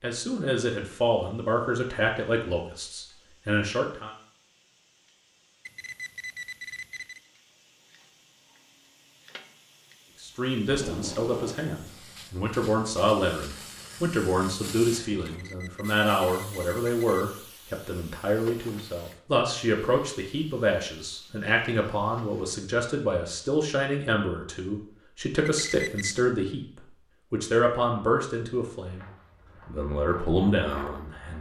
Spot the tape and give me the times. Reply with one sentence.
You can hear the tape from 10.7 to 11.6 s.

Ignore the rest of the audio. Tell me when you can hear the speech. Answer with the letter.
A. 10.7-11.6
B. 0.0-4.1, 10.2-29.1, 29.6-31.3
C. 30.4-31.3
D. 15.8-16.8
B.